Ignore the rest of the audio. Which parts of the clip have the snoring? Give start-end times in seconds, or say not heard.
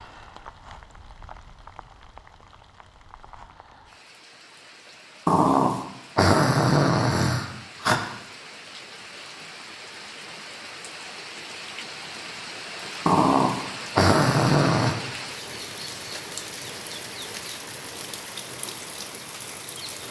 5.2-8.0, 13.1-14.9.